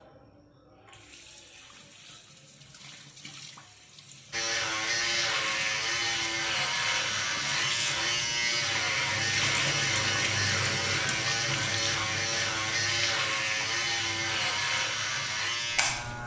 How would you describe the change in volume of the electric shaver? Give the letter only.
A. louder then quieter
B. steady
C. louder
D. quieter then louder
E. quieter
B.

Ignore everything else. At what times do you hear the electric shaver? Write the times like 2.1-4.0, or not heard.
4.3-16.2.